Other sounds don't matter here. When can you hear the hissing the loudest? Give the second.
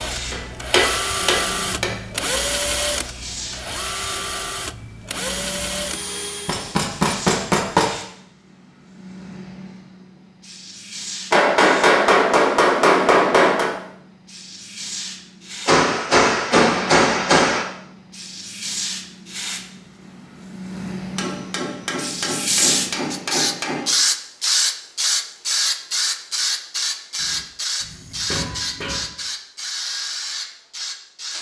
24 s.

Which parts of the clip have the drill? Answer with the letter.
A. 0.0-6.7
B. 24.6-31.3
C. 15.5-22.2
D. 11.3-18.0
A.